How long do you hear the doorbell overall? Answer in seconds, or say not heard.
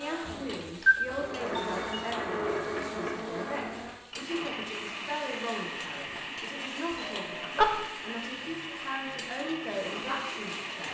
2 s.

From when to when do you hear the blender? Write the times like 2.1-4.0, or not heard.
0.0-10.8.